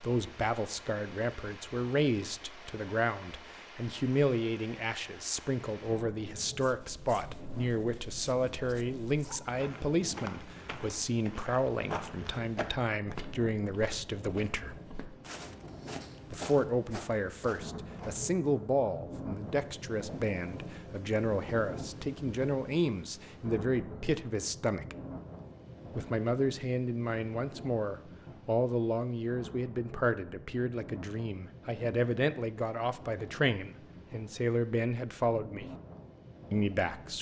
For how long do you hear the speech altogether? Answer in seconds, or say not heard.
34 s.